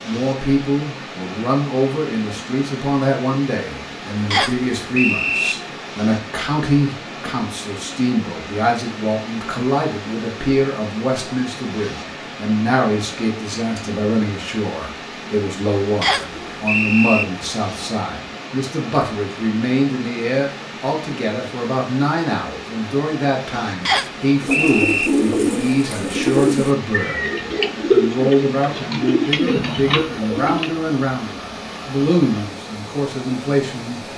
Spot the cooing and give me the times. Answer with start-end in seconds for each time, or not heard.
24.4-30.7.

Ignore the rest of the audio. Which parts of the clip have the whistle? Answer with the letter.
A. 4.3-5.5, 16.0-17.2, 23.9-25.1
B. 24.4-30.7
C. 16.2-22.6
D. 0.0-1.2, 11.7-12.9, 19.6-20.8
A.